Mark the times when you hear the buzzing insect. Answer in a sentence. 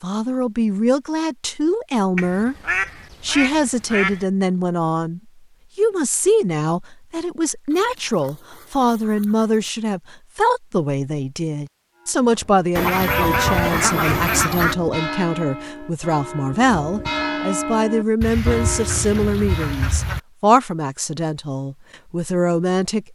The buzzing insect can't be heard in this clip.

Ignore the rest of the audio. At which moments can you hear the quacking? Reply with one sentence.
You can hear the quacking from 2.1 to 4.2 s, from 7.7 to 9.7 s, from 12.8 to 14.8 s and from 18.2 to 20.2 s.